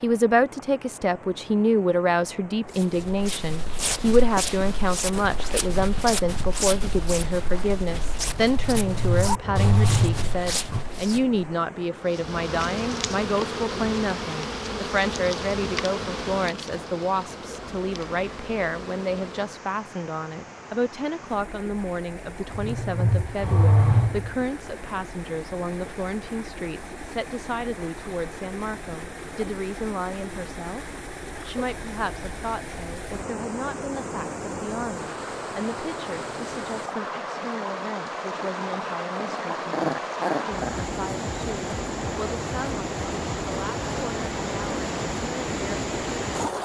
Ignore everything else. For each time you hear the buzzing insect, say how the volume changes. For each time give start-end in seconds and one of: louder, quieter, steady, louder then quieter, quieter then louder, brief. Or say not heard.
12.0-19.5 quieter.